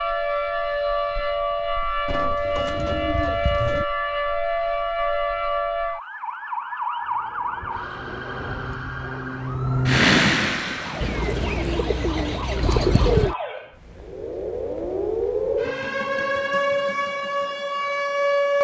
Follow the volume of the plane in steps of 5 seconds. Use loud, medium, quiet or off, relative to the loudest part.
off, medium, loud, off.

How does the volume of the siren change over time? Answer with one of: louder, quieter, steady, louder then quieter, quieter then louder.
quieter then louder.